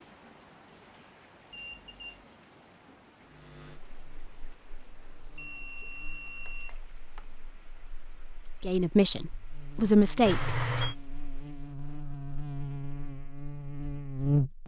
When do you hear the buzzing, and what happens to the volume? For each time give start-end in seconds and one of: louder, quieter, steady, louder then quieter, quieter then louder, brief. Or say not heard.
3.2-14.6 quieter then louder.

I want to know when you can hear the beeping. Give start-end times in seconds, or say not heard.
1.5-2.2, 5.3-7.2, 10.2-10.9.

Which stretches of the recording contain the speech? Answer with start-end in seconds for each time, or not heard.
8.6-10.6.